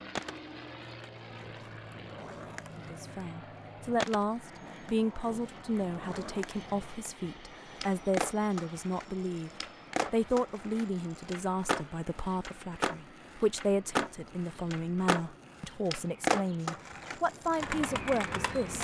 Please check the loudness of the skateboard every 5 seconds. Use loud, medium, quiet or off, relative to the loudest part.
medium, medium, loud, loud.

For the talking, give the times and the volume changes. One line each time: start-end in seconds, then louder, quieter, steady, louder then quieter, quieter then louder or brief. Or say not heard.
2.8-18.8 steady.